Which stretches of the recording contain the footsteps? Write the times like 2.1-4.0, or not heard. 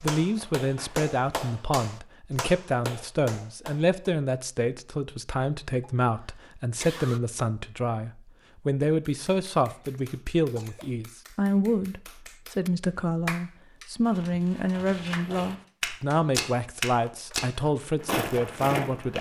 0.0-1.9, 14.0-19.1.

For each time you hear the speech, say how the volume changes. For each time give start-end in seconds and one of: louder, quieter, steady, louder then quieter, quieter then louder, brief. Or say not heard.
0.0-19.1 steady.